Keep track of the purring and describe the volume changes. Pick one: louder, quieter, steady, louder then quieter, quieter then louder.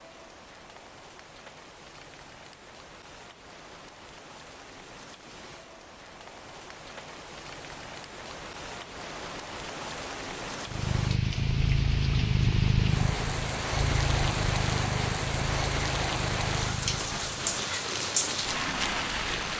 quieter.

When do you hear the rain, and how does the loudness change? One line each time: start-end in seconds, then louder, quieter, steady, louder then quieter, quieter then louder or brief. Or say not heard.
0.0-19.5 louder.